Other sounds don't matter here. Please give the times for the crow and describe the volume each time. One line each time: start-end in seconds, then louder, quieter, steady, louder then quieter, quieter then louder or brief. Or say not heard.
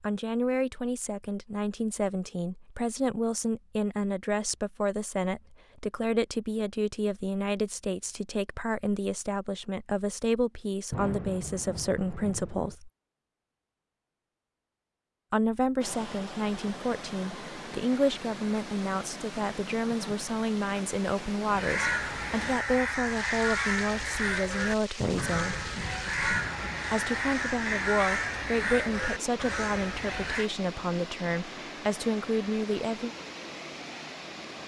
21.5-30.5 steady.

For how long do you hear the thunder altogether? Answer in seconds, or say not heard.
4 s.